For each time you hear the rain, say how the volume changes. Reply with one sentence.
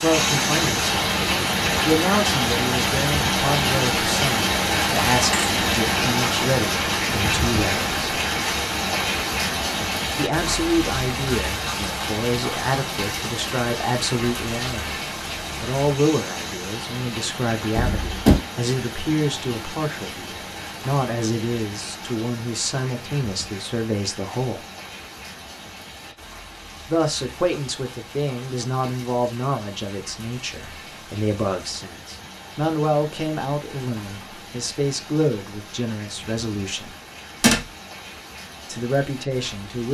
The rain can be heard from 0.0 to 39.9 s, getting quieter.